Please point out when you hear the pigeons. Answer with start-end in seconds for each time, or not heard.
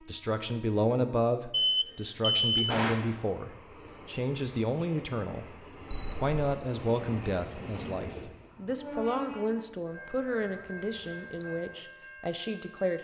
not heard.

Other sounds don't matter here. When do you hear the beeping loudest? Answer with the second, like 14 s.
2 s.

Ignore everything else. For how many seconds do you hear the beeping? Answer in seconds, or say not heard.
3 s.